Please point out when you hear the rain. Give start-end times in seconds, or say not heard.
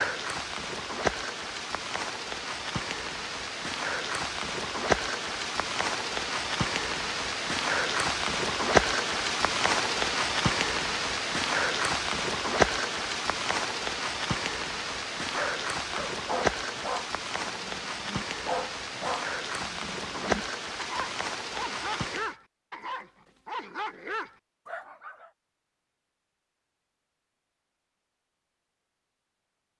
0.0-22.4.